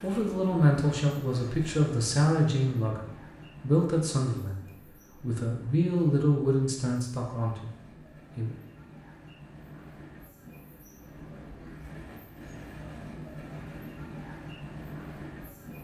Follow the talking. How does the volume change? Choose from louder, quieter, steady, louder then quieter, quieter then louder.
quieter.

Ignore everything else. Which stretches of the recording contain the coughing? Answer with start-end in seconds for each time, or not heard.
not heard.